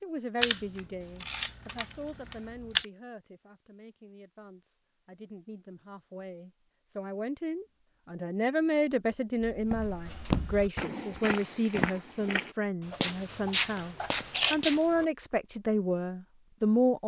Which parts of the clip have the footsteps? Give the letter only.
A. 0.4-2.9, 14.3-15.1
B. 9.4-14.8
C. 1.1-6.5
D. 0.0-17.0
B.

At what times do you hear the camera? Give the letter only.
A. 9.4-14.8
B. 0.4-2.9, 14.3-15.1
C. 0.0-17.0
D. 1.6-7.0
B.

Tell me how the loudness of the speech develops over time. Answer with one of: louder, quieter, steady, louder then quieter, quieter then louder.
quieter then louder.